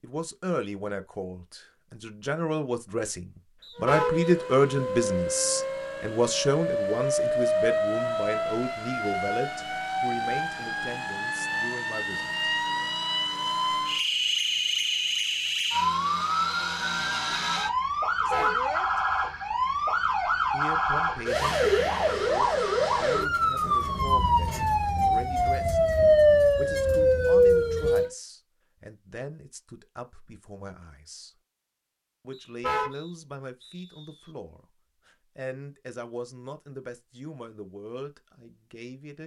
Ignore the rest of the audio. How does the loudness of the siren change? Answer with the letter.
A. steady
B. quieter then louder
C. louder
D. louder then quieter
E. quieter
C.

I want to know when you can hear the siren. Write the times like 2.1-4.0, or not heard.
3.8-28.1.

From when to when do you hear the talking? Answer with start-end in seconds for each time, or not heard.
0.0-12.3, 18.2-19.0, 20.5-31.3, 32.2-39.2.